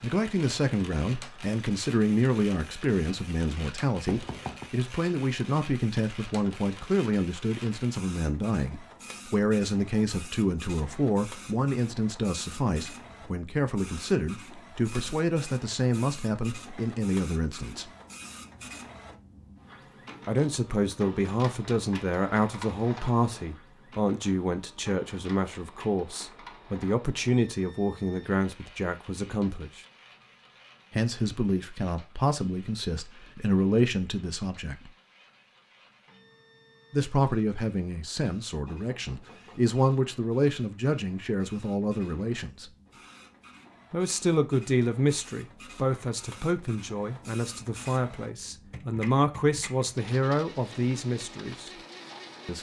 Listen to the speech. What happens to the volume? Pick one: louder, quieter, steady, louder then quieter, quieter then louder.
steady.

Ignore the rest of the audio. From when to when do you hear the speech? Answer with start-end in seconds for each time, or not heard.
0.0-17.9, 20.2-29.9, 30.9-34.9, 36.9-42.7, 43.9-51.7.